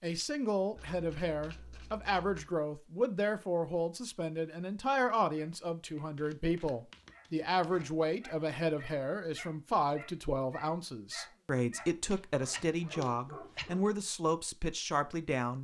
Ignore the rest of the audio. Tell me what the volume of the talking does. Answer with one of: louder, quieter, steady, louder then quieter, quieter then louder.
steady.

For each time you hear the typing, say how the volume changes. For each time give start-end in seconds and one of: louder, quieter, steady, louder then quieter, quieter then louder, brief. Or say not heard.
not heard.